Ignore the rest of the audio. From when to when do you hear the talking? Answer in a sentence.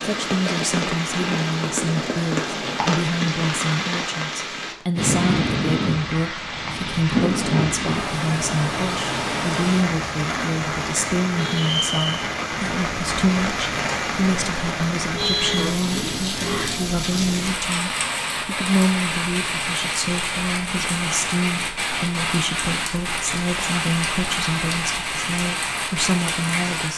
You can hear the talking from 0.0 to 26.9 s.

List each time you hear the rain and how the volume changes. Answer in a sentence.
You can hear the rain from 0.0 to 26.9 s, at a steady volume.